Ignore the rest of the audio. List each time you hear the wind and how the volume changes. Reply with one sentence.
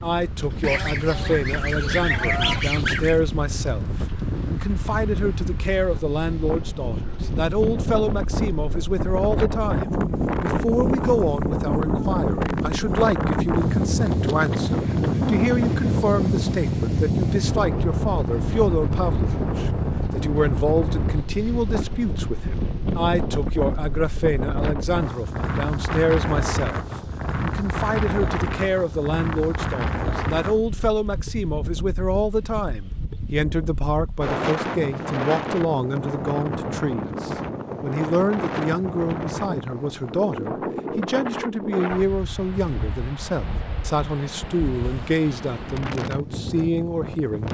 You can hear the wind from 0.0 to 47.4 s, getting louder then quieter.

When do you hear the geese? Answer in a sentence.
The geese can be heard from 0.6 to 3.2 s.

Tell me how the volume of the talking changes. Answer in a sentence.
The volume of the talking stays about the same.